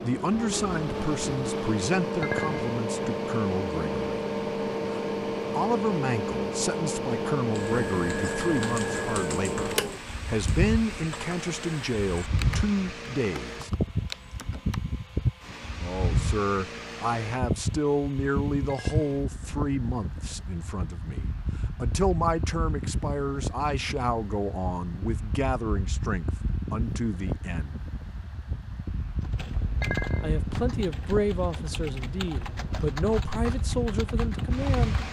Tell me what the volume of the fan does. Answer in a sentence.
The loudness of the fan goes down.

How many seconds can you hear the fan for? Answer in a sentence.
You can hear the fan for 35 seconds altogether.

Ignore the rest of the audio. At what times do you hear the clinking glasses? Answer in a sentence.
The clinking glasses can be heard from 2.2 to 2.8 s, from 18.6 to 19.3 s and from 29.8 to 30.4 s.